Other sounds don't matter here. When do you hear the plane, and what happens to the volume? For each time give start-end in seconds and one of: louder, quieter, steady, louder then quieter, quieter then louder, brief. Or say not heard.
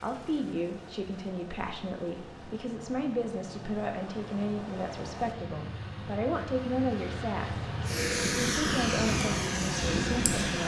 0.0-10.6 louder.